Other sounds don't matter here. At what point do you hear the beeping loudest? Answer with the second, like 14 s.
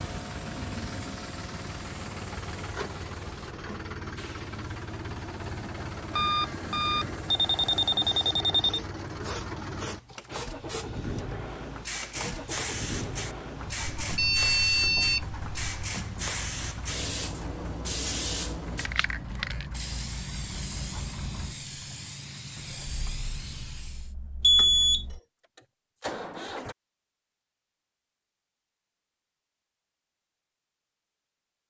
25 s.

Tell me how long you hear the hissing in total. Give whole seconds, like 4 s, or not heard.
24 s.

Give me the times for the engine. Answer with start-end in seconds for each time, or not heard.
0.0-26.8.